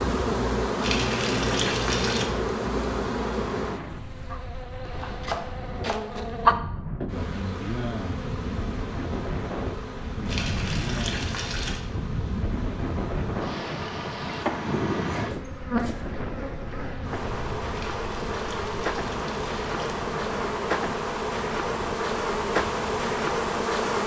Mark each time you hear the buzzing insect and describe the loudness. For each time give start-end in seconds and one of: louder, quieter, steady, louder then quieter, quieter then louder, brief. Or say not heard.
0.0-24.0 quieter then louder.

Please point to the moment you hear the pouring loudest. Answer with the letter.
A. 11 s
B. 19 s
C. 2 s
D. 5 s
C.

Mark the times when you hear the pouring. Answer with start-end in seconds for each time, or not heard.
0.8-2.3, 10.2-11.8, 17.7-20.1.